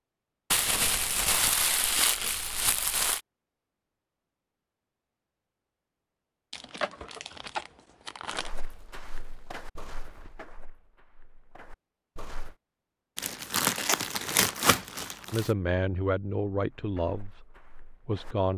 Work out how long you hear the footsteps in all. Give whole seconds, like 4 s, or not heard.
6 s.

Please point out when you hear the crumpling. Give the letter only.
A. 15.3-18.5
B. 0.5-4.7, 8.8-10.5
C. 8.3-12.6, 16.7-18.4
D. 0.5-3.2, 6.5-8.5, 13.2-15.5
D.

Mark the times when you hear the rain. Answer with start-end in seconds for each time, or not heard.
not heard.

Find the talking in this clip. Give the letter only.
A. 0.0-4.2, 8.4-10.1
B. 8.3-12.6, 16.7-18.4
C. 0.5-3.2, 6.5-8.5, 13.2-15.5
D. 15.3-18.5
D.